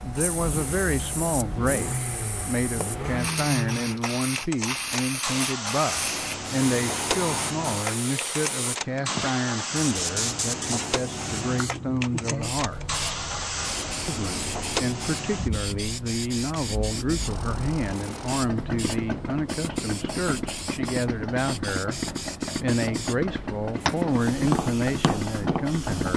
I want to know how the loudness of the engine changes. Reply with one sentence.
The volume of the engine stays about the same.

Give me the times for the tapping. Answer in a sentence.
The tapping can be heard from 23.9 to 26.1 s.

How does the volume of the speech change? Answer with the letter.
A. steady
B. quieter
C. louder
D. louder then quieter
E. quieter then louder
A.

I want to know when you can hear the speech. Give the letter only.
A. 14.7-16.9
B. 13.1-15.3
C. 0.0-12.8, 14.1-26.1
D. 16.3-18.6
C.